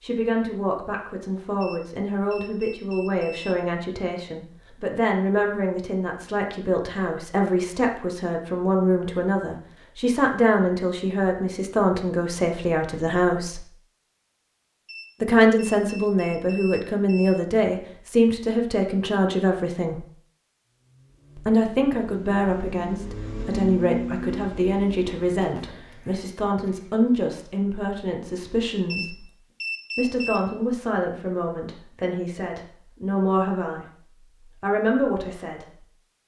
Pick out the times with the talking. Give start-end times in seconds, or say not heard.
0.0-13.6, 15.2-20.1, 21.4-29.3, 29.9-35.8.